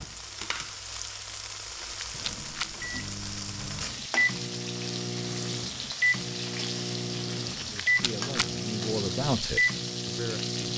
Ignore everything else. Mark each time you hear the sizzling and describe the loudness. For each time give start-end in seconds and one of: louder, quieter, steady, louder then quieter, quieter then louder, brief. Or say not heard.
0.0-10.7 steady.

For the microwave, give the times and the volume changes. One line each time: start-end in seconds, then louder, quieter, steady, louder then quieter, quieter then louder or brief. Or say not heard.
2.1-10.7 louder.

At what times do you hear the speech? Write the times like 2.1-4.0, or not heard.
7.5-10.5.